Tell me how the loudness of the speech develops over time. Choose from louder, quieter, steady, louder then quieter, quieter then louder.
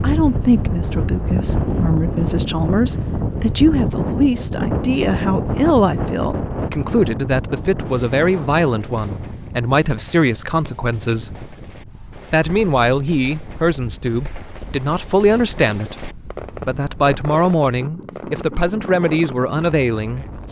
steady.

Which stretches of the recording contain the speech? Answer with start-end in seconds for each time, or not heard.
0.0-11.5, 12.3-16.1, 16.6-20.4.